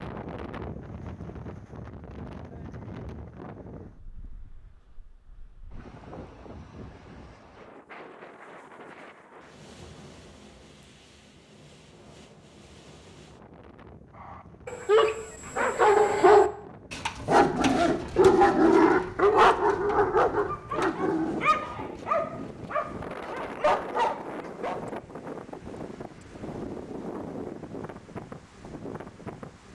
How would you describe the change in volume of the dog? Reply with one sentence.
The volume of the dog goes down.